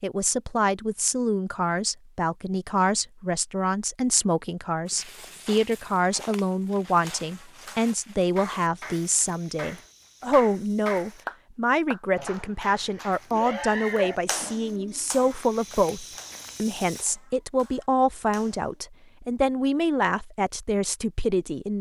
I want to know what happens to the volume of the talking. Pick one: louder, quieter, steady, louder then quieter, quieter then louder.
steady.